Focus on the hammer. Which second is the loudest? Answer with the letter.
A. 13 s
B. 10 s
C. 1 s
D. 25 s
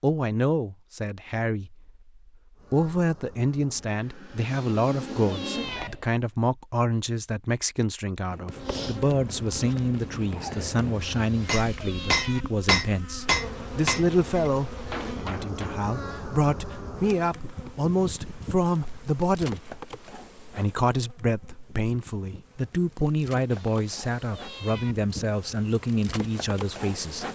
A.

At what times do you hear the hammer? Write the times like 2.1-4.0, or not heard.
8.3-15.9.